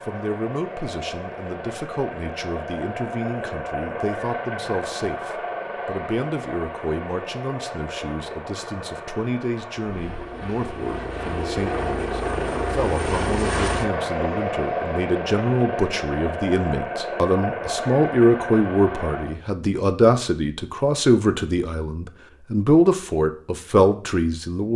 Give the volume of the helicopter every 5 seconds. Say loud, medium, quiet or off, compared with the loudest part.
medium, medium, loud, loud, off.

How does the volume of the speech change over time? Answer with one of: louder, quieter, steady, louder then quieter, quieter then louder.
louder.